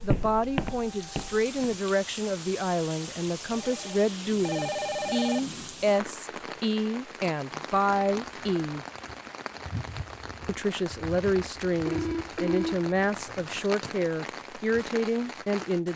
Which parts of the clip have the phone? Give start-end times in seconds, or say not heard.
3.5-5.4, 11.8-13.6.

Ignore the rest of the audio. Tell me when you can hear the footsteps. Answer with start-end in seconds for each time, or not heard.
0.0-1.8.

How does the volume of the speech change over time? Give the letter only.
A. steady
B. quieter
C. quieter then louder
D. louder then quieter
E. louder
A.